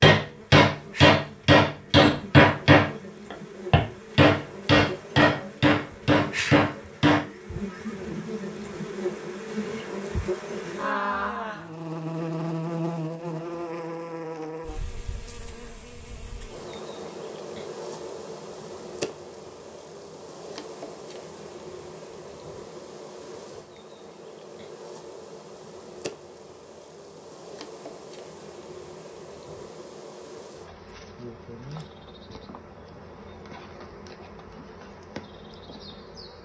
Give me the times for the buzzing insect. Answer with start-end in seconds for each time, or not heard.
0.1-36.3.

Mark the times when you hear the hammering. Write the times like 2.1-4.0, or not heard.
0.0-7.2.